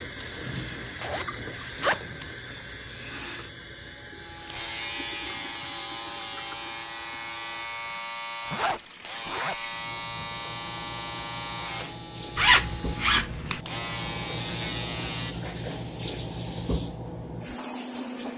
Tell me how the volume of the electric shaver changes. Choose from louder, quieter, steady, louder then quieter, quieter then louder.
louder.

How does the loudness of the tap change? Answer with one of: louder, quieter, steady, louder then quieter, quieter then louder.
quieter then louder.